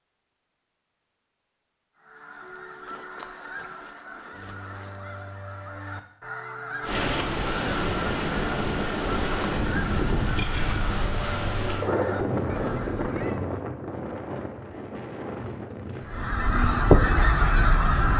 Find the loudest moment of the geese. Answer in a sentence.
The volume of the geese peaks at 17 seconds.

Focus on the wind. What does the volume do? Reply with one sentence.
The loudness of the wind goes down.